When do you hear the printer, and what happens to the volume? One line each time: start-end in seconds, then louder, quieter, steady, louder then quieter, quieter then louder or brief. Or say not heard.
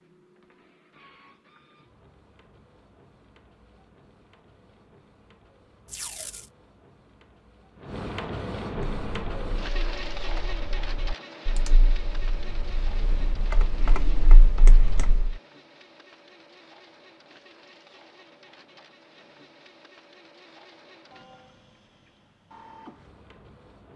0.0-23.9 louder then quieter.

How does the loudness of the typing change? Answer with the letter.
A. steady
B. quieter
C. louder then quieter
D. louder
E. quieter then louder
D.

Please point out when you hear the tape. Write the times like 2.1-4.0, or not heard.
5.8-6.5.